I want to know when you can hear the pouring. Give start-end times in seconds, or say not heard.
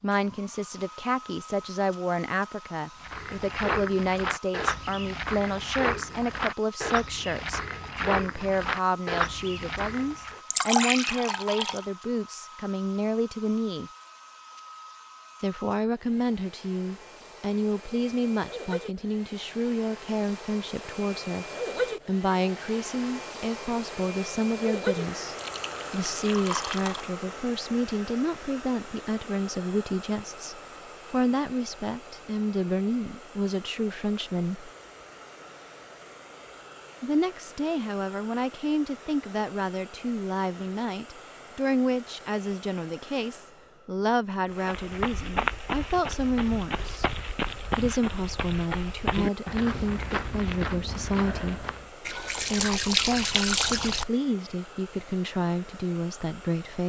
10.5-11.8, 25.4-27.1, 52.0-54.0.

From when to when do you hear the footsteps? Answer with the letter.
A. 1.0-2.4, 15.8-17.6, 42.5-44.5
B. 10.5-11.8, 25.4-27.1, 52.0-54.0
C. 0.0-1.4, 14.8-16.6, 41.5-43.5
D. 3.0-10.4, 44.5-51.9
D.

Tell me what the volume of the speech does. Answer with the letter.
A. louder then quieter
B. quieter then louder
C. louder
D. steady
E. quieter
D.